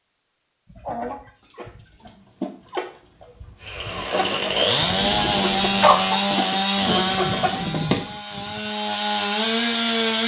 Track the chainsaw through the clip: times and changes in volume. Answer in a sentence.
The chainsaw can be heard from 3.6 to 10.2 s, getting quieter then louder.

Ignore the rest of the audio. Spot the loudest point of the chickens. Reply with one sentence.
The volume of the chickens peaks at 6 seconds.